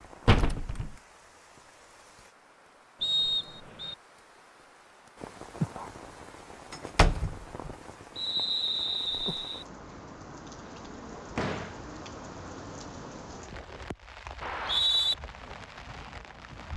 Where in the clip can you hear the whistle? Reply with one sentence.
You can hear the whistle from 3.0 to 4.0 s, from 8.2 to 9.7 s and from 14.4 to 15.2 s.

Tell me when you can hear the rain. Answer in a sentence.
You can hear the rain from 0.0 to 16.7 s.